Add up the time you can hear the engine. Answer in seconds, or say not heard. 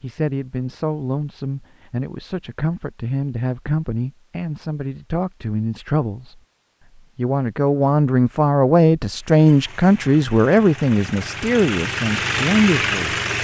4 s.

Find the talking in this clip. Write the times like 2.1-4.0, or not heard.
0.0-6.4, 7.2-13.2.